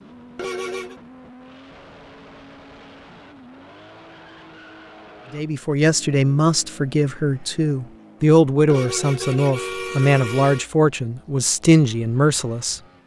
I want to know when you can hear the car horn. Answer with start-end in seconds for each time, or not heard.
0.3-0.9, 8.7-10.7.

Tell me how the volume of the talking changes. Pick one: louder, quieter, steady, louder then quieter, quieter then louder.
steady.